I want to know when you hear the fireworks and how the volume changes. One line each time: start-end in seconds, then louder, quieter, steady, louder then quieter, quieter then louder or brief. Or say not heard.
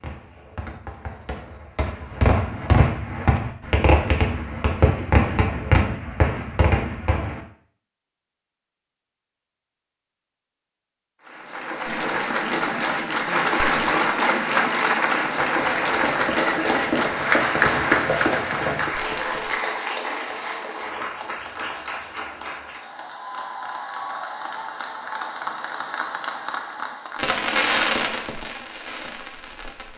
0.0-7.4 louder
11.8-19.6 louder
27.1-29.9 brief.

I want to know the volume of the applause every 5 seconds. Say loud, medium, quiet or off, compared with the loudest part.
off, off, loud, loud, medium, medium.